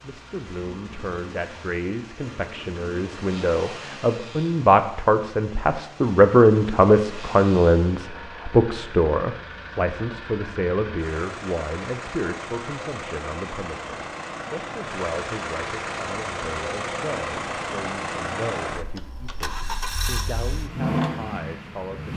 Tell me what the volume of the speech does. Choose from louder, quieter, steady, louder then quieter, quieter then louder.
louder then quieter.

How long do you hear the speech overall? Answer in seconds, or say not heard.
22 s.